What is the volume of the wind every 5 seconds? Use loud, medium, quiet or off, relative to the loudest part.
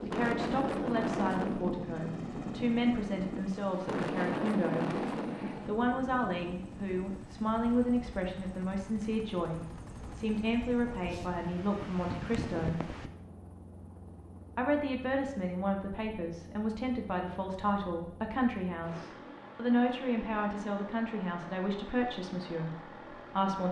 loud, medium, medium, off, off.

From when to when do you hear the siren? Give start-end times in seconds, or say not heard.
not heard.